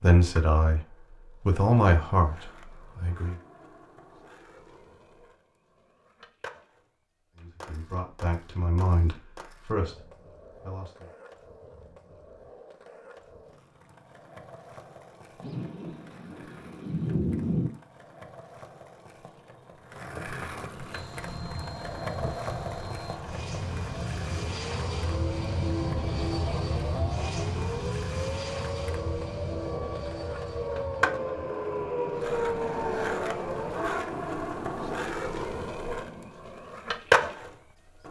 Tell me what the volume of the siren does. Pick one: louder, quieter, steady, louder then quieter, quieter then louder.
louder.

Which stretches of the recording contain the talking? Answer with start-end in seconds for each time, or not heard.
0.0-3.4, 7.3-11.1.